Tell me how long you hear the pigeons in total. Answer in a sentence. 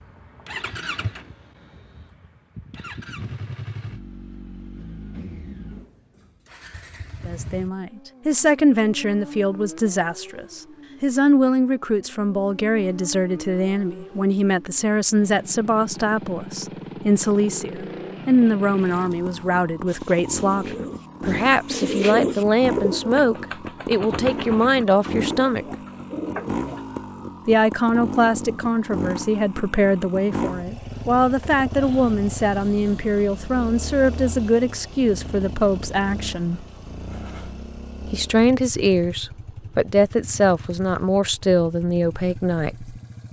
You can hear the pigeons for 8 seconds altogether.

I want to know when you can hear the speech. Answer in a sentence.
You can hear the speech from 7.2 to 25.8 s, from 27.4 to 36.6 s and from 38.0 to 42.9 s.